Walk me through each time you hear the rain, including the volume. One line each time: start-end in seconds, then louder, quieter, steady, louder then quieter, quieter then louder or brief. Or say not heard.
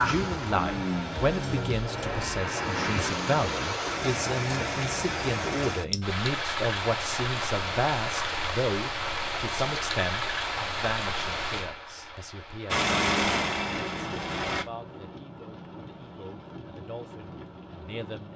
0.0-18.3 quieter.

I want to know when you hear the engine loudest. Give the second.
13 s.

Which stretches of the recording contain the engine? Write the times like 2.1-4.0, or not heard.
0.0-3.5, 12.7-14.7.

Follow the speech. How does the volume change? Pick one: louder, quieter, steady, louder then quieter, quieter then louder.
quieter.